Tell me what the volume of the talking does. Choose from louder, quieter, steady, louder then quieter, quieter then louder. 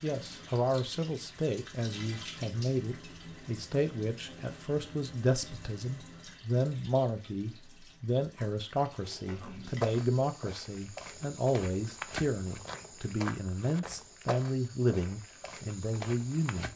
steady.